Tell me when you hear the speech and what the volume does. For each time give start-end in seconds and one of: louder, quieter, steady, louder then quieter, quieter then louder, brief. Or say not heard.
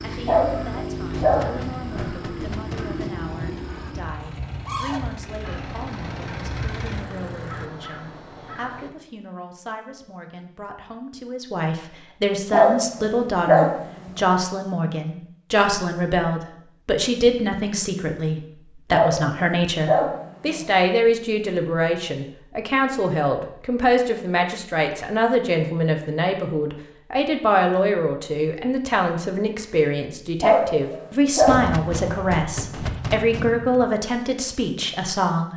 0.0-35.5 louder.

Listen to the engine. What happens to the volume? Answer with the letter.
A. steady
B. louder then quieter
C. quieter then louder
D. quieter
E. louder
E.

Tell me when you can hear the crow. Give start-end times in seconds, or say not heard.
0.0-8.9.